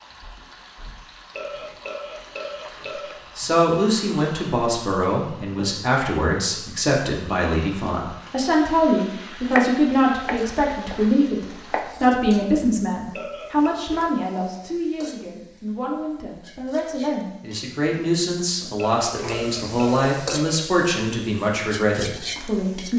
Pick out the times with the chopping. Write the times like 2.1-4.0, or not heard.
9.4-11.9.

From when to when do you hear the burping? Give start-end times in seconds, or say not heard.
1.4-3.2, 13.2-13.8, 18.8-20.6.